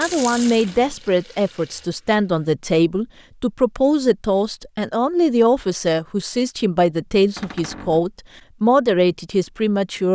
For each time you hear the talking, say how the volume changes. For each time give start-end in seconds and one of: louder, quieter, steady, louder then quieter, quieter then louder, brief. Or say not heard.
0.0-10.0 steady.